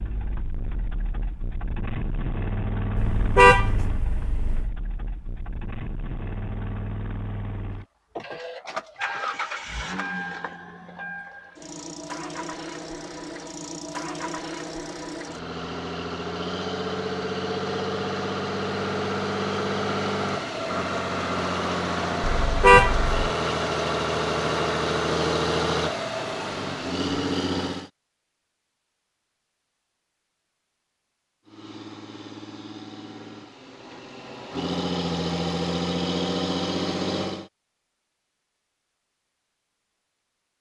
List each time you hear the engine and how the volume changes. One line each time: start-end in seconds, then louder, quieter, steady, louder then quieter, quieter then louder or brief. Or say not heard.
0.0-27.9 louder
31.4-37.5 louder.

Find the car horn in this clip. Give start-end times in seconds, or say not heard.
3.0-4.7, 22.3-23.1.